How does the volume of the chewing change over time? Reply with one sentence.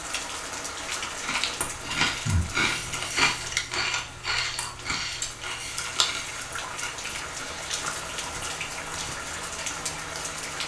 The volume of the chewing goes down.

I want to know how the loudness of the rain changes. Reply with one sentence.
The volume of the rain goes down, then up.